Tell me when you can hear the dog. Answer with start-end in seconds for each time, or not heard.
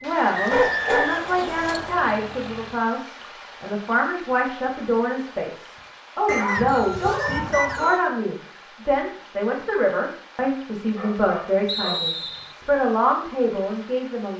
0.5-1.1, 6.2-8.0, 10.9-12.0.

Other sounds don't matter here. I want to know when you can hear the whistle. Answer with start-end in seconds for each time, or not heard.
0.3-2.1, 6.2-8.1, 11.7-12.6.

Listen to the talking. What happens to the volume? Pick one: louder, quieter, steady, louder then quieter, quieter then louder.
steady.